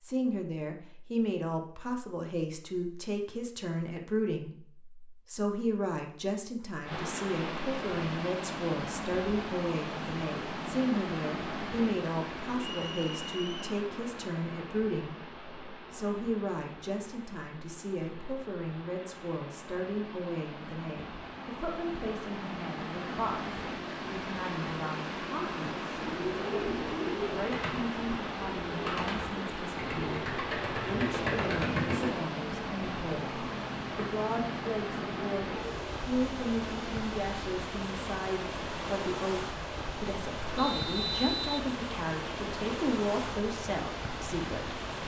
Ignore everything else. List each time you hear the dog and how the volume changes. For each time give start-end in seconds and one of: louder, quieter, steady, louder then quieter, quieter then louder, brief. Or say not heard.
not heard.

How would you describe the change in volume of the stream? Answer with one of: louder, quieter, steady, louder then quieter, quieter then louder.
quieter then louder.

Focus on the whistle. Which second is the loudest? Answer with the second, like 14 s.
41 s.